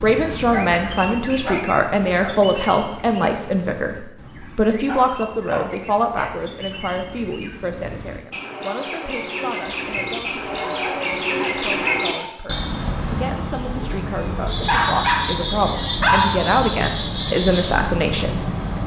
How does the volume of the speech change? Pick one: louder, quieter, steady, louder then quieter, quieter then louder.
quieter then louder.